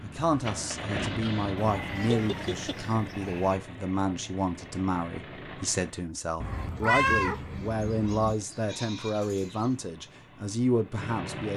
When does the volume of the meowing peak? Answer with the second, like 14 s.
7 s.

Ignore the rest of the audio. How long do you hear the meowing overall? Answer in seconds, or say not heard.
3 s.